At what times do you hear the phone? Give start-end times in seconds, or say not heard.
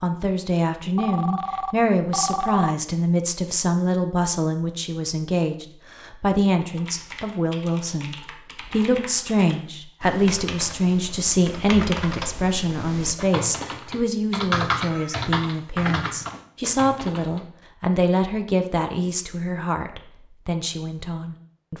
0.9-2.8, 14.8-15.3.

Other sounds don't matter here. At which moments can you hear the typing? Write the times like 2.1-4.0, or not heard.
6.6-17.4.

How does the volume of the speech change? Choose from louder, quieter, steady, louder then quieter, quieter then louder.
steady.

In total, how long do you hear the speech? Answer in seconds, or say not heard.
22 s.